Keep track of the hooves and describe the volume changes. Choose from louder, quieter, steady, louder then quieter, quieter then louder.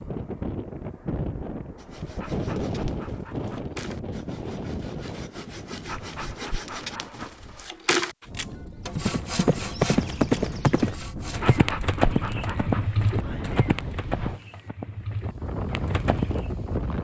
quieter.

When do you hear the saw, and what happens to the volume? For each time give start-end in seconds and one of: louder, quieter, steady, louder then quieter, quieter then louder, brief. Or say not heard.
1.8-11.6 louder then quieter.